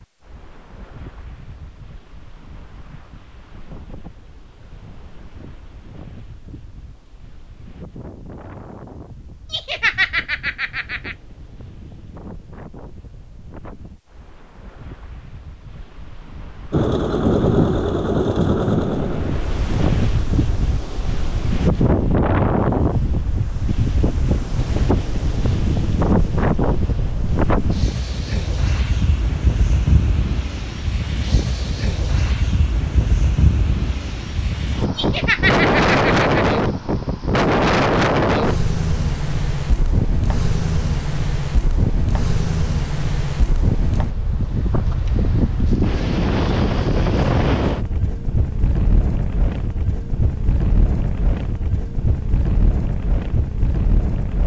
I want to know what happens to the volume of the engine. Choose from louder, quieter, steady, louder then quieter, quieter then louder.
quieter.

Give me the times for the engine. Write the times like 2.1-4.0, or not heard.
16.7-21.5.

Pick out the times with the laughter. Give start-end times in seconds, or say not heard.
9.5-11.2, 35.0-36.6.